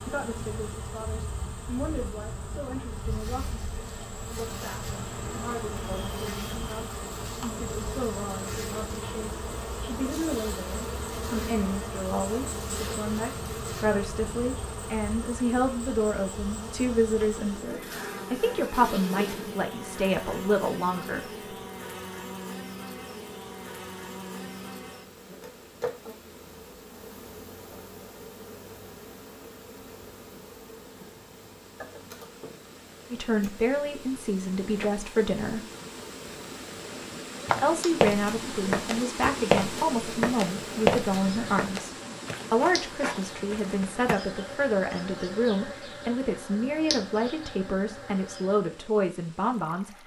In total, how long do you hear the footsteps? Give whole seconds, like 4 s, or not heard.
7 s.